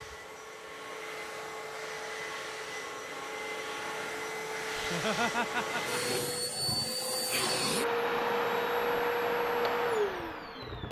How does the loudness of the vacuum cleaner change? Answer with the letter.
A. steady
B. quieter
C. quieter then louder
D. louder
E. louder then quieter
D.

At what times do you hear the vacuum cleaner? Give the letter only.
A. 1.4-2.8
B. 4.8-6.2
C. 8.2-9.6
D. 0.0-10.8
D.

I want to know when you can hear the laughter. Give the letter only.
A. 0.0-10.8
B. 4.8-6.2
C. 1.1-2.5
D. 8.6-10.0
B.